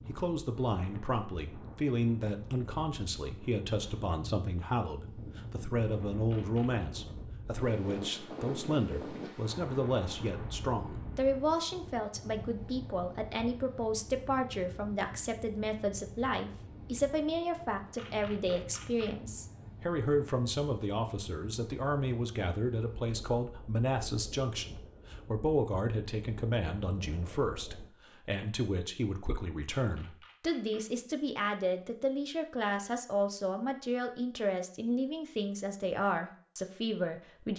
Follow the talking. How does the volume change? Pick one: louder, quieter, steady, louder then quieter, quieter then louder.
steady.